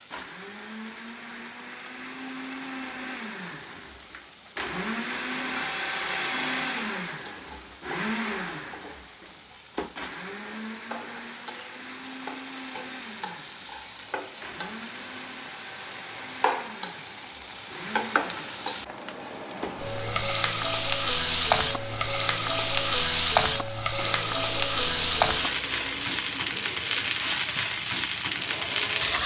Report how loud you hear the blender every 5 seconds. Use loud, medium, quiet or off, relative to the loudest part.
medium, loud, medium, medium, medium, medium.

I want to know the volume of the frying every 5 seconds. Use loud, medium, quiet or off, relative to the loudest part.
quiet, quiet, quiet, medium, loud, loud.